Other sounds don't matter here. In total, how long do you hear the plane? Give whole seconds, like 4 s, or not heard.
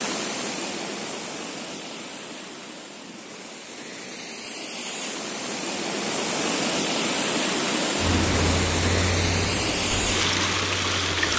3 s.